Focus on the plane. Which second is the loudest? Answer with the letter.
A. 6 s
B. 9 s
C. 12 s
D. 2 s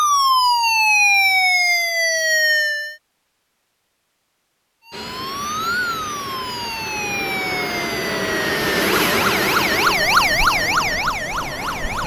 B.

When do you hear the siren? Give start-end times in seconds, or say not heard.
0.0-3.0, 4.8-12.0.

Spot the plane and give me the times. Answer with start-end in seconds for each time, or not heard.
4.9-12.0.